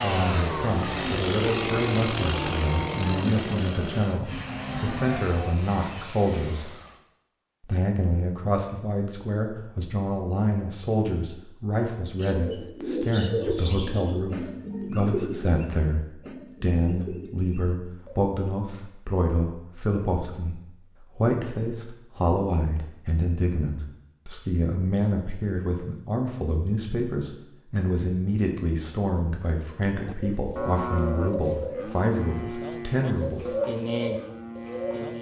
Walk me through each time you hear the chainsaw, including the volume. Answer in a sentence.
The chainsaw can be heard from 0.0 to 7.0 s, getting quieter.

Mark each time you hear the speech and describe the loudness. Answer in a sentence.
The speech can be heard from 0.0 to 6.7 s, at a steady volume; and from 7.6 to 33.5 s, at a steady volume.